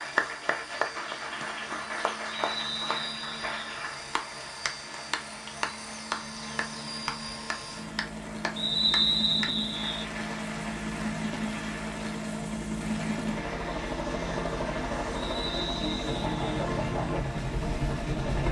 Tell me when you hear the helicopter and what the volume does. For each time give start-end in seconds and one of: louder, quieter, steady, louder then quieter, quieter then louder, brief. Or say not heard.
0.0-18.4 louder.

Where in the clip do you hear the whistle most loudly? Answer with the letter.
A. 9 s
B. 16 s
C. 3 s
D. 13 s
A.